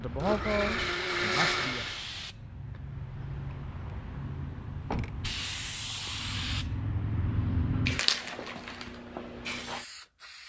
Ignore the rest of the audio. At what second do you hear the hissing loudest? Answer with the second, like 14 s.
8 s.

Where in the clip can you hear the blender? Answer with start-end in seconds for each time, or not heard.
0.0-2.1.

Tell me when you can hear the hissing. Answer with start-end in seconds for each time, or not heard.
0.0-10.4.